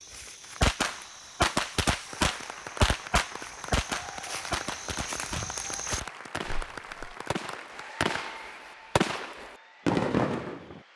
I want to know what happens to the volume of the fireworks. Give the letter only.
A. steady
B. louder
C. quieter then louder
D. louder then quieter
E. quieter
C.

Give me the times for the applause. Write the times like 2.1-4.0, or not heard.
2.0-10.9.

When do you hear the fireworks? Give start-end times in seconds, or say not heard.
0.6-10.8.